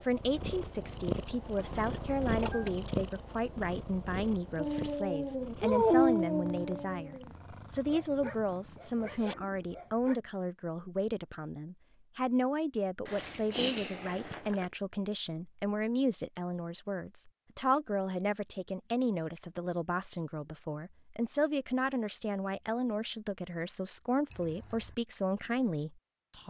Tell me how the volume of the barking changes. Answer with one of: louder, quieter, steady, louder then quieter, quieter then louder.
quieter.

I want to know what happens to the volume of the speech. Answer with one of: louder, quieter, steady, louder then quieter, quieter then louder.
steady.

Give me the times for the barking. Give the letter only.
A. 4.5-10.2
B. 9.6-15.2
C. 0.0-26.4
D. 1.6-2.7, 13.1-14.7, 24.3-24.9
A.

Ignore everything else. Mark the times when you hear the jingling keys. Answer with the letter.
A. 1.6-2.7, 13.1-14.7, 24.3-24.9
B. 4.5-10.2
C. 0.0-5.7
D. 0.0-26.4
A.